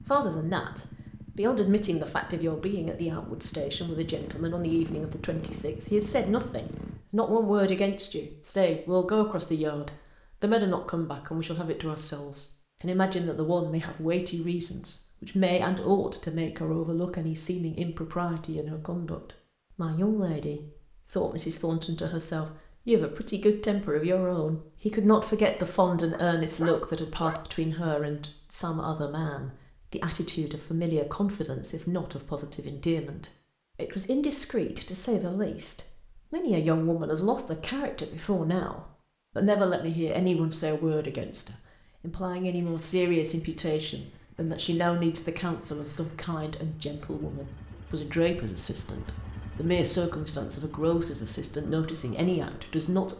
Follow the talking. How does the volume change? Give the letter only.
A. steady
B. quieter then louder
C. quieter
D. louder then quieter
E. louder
A.